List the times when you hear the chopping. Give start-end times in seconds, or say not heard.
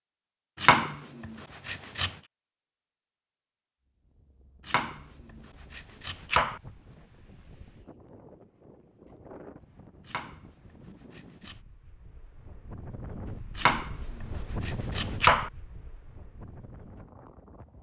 0.6-2.1, 4.6-6.6, 10.0-11.6, 13.6-15.5.